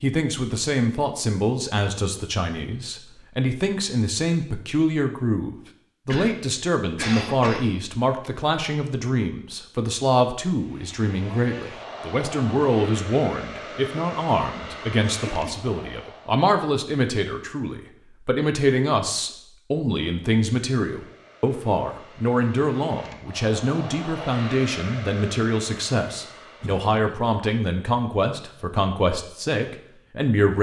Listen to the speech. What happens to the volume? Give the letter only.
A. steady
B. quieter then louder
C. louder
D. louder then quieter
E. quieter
A.